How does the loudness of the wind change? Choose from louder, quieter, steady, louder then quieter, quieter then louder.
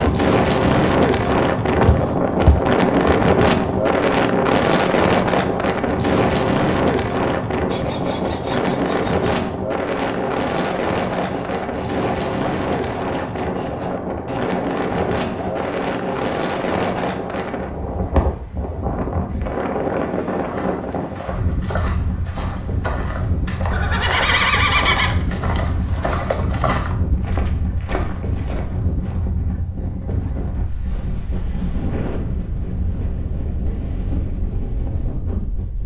quieter.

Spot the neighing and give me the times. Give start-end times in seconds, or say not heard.
23.7-25.2.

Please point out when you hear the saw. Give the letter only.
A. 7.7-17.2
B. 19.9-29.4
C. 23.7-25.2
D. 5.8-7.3
A.